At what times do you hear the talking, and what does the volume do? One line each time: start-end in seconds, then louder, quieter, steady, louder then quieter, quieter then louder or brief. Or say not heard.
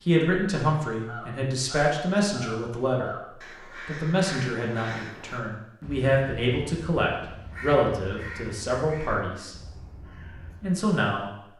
0.0-9.6 steady
10.6-11.5 brief.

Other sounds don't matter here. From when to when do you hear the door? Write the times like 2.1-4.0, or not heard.
not heard.